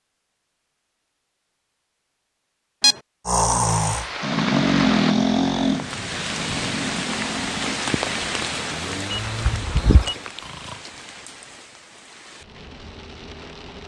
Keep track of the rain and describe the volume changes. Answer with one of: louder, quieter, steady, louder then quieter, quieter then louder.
quieter.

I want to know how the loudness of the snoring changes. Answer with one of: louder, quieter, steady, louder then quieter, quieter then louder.
quieter.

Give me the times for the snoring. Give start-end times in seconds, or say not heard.
3.2-10.8.